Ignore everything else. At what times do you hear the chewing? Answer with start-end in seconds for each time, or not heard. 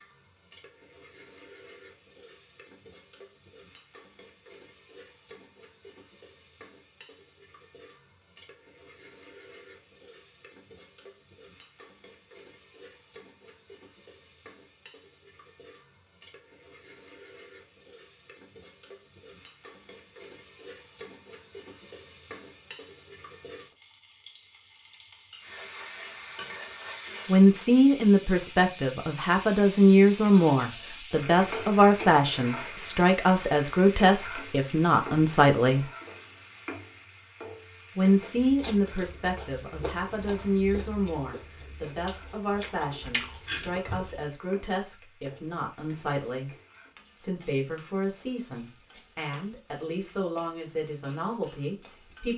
38.4-44.2.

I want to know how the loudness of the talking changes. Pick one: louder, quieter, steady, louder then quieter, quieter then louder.
quieter.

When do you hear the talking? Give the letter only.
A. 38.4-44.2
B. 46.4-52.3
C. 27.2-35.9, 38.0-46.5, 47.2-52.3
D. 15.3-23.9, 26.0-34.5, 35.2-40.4
C.